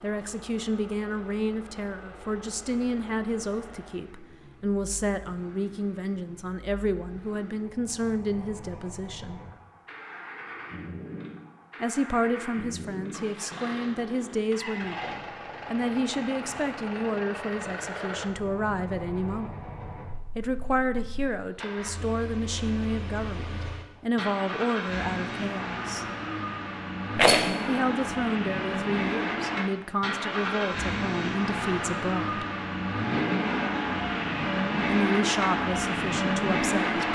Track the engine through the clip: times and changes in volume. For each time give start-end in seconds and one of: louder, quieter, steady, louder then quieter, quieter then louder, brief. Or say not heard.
0.0-37.1 louder.